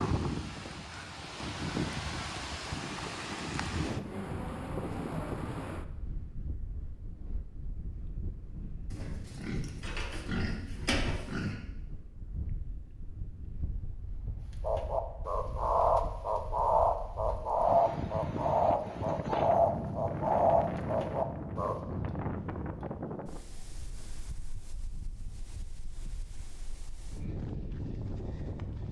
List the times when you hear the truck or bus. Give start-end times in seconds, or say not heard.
not heard.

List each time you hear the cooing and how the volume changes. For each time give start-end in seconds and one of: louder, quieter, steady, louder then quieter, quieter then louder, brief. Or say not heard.
14.6-21.8 steady.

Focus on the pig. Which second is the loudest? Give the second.
11 s.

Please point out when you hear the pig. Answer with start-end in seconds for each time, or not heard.
8.9-11.6.